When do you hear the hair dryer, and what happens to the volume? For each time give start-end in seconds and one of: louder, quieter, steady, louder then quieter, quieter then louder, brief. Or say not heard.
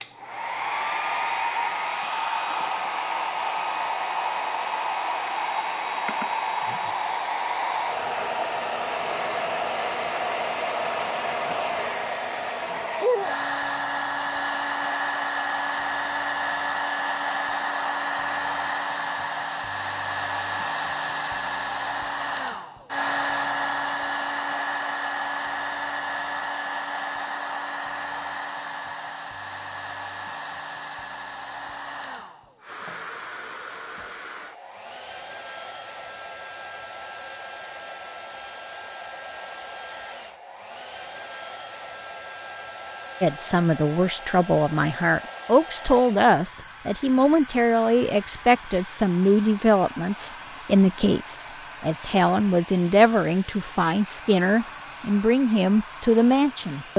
0.0-56.9 quieter.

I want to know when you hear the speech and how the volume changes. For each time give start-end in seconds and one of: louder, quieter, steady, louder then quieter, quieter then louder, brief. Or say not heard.
43.2-56.9 steady.